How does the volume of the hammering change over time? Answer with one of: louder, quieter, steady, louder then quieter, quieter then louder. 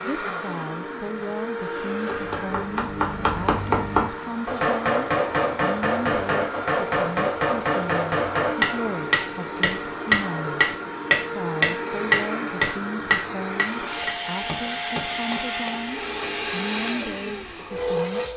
steady.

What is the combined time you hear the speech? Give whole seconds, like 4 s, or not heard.
18 s.